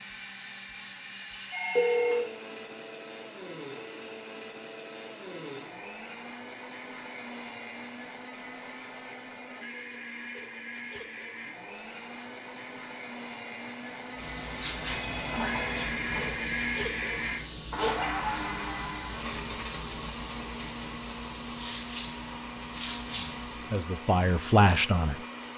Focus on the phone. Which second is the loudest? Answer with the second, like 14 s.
2 s.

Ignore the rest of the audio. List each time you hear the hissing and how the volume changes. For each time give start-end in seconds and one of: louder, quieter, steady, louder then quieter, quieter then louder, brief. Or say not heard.
11.7-23.8 louder.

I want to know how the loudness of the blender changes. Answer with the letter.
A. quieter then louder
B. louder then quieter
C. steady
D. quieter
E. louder
B.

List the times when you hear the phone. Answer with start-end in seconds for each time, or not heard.
1.5-2.3, 14.8-16.4.